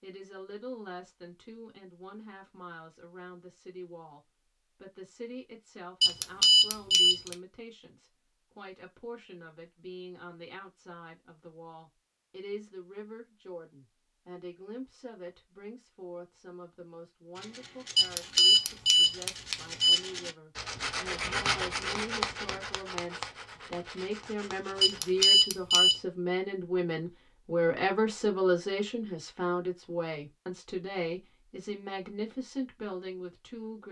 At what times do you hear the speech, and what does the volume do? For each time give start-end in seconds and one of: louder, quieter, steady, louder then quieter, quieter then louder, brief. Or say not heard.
0.0-33.8 louder.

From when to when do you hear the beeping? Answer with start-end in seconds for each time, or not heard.
6.0-7.3, 17.9-20.0, 24.8-26.0.